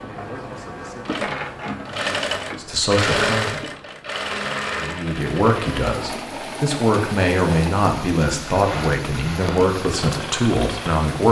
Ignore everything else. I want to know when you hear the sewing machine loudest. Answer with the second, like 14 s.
3 s.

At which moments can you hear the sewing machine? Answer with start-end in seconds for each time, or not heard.
0.0-11.0.